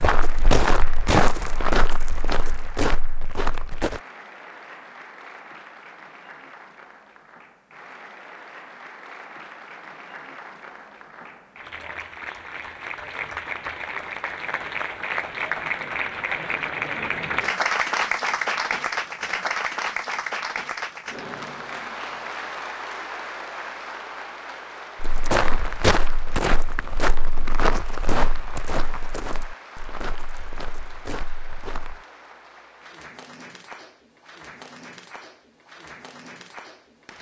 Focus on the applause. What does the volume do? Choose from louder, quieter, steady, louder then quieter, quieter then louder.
louder then quieter.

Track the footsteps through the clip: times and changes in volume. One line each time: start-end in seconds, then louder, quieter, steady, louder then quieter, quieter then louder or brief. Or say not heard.
0.0-4.0 quieter
25.0-32.0 quieter.